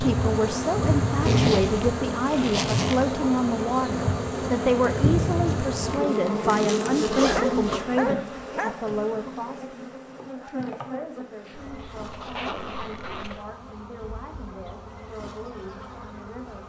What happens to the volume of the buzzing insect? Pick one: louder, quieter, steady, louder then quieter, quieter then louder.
quieter.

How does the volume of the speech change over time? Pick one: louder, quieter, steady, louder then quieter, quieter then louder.
quieter.